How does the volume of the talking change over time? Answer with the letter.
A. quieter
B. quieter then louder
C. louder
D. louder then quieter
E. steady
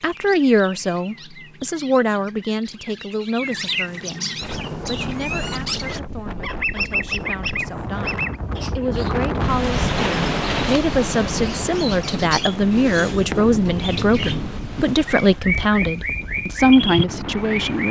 B.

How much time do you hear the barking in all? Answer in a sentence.
The barking can't be heard in this clip.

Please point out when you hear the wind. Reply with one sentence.
You can hear the wind from 4.4 to 17.8 s.